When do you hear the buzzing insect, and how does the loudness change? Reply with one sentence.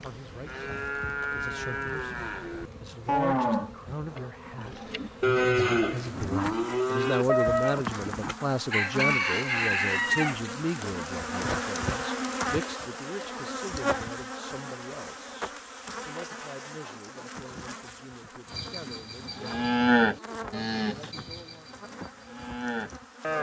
You can hear the buzzing insect from 0.0 to 23.3 s, getting louder then quieter.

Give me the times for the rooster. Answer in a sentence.
You can hear the rooster from 8.7 to 10.4 s.